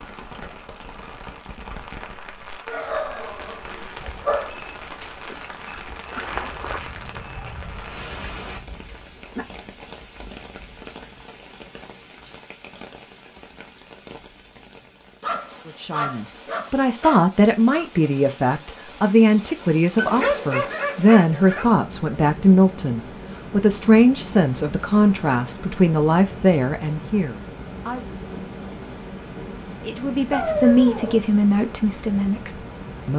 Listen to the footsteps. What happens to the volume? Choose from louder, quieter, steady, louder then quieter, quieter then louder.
louder then quieter.